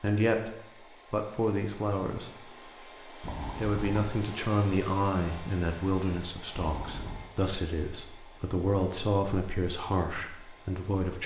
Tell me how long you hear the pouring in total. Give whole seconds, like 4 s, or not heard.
2 s.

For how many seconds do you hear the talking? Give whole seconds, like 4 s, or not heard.
10 s.